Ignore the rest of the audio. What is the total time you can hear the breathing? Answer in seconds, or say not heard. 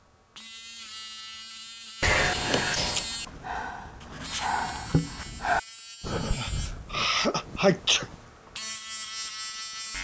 4 s.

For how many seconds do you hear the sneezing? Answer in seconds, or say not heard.
3 s.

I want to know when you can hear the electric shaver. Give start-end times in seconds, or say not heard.
0.0-9.9.